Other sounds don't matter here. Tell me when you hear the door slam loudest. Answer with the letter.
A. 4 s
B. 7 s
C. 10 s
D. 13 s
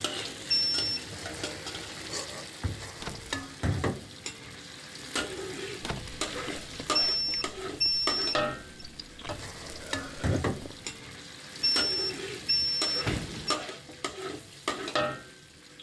D.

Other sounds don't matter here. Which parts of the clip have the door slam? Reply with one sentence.
The door slam can be heard from 2.9 to 3.4 s, from 5.7 to 6.2 s and from 12.6 to 13.7 s.